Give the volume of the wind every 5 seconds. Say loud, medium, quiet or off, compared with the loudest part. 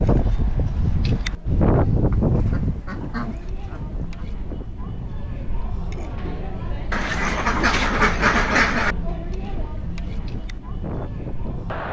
loud, quiet, medium.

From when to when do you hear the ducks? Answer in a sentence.
The ducks can be heard from 2.1 to 4.2 s and from 6.9 to 8.9 s.